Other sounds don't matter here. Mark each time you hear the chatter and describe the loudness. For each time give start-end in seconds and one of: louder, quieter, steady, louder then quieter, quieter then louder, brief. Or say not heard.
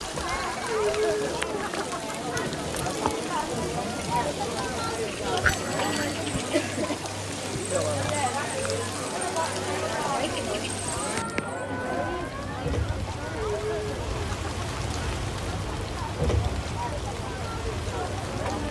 0.0-18.6 quieter.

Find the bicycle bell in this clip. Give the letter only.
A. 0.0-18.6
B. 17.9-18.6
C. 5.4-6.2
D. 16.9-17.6
C.